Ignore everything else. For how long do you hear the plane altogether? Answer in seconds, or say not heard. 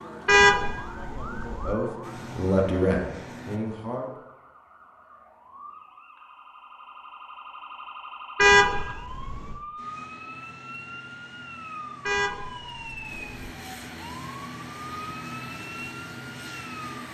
9 s.